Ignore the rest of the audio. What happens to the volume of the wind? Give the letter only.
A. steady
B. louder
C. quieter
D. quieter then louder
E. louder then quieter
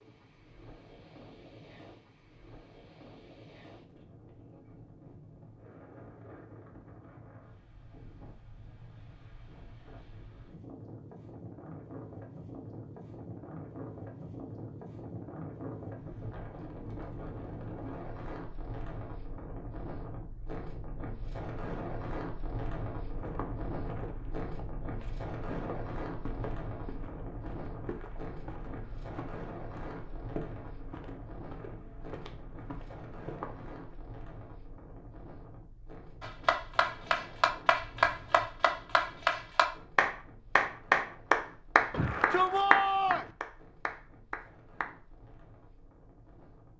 E.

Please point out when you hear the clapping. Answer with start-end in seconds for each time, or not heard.
36.2-44.9.